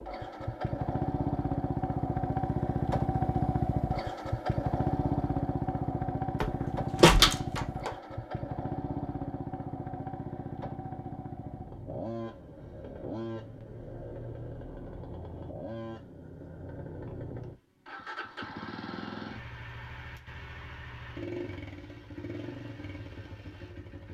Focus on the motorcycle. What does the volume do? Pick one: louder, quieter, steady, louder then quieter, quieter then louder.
quieter.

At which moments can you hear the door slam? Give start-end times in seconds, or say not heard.
6.4-7.9.